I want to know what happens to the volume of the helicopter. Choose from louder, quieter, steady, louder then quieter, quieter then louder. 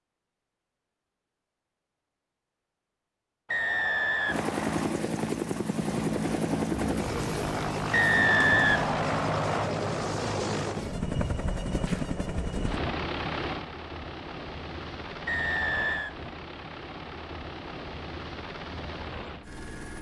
quieter.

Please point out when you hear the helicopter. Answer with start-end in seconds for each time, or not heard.
4.2-19.9.